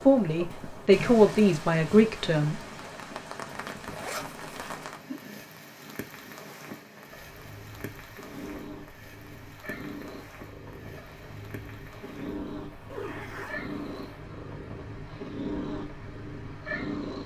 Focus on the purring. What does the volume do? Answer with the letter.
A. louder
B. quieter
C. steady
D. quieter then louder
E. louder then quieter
A.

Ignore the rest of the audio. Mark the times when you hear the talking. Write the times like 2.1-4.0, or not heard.
0.1-2.5.